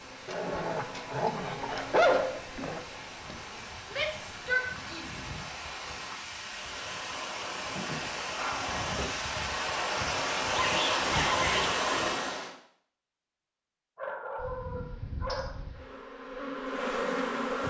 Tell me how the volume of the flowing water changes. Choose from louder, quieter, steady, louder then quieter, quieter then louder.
louder.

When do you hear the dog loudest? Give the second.
2 s.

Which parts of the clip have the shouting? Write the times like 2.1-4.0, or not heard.
3.9-5.0, 10.5-11.7.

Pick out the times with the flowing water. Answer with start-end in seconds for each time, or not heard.
0.0-12.6.